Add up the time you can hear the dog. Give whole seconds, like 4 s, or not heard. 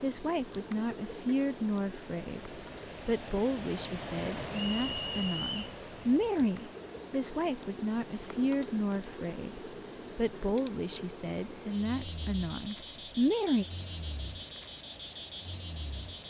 not heard.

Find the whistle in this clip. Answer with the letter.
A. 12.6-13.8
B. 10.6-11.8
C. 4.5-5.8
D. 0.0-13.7
C.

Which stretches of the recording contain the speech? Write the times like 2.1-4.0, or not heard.
0.0-13.7.